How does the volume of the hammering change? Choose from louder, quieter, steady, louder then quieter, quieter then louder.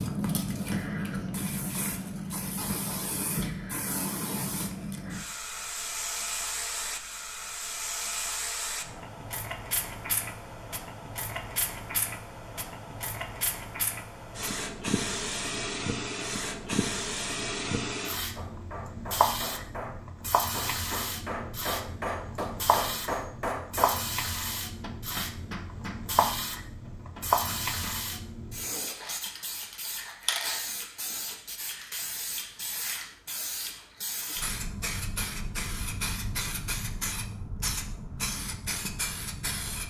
louder then quieter.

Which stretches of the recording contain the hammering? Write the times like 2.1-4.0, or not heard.
18.4-28.0.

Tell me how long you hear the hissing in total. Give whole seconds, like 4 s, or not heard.
40 s.